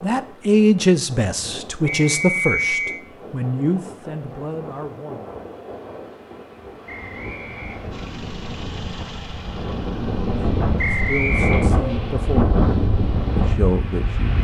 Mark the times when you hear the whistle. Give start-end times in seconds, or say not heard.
1.9-3.0, 6.8-7.8, 10.8-11.7.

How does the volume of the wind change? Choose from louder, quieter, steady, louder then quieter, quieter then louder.
louder.